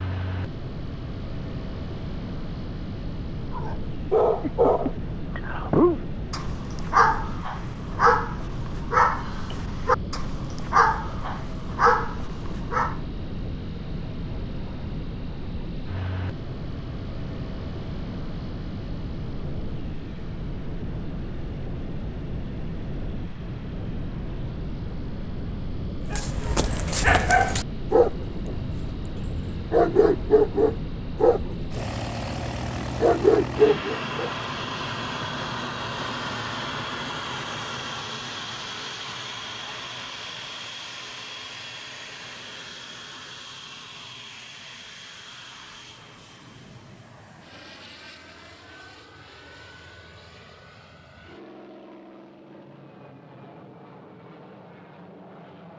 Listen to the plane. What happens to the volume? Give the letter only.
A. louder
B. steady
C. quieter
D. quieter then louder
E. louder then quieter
C.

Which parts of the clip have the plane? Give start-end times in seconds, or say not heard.
0.0-55.7.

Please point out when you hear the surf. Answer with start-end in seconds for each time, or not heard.
not heard.